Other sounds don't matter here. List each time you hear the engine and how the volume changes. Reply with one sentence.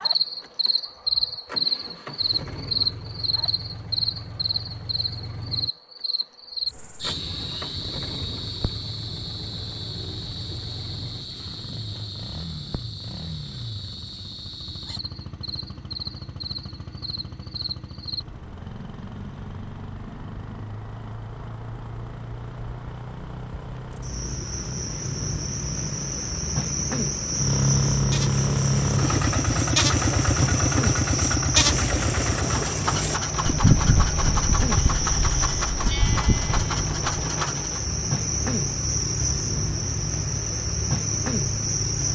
You can hear the engine from 0.0 to 42.0 s, getting louder then quieter.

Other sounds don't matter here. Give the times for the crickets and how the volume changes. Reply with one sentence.
You can hear the crickets from 0.0 to 42.0 s, getting quieter then louder.